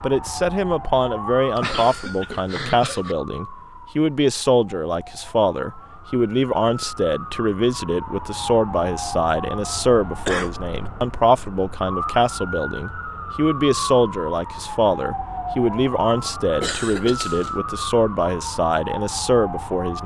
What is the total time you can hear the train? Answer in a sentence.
The train can't be heard in this clip.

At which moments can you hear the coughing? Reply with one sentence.
The coughing can be heard from 1.6 to 3.1 s, from 10.2 to 10.9 s and from 16.6 to 17.5 s.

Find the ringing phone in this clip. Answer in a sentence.
The ringing phone can't be heard in this clip.